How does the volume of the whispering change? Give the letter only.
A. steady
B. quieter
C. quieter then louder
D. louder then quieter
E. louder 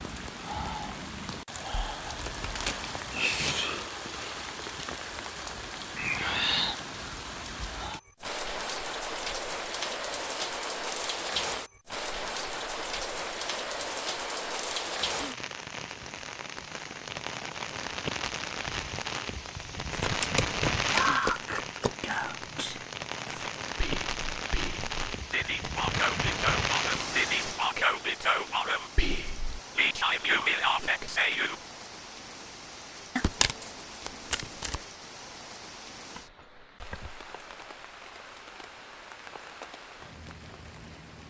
C.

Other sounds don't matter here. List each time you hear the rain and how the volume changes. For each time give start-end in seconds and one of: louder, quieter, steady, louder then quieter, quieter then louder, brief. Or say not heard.
0.0-41.2 quieter.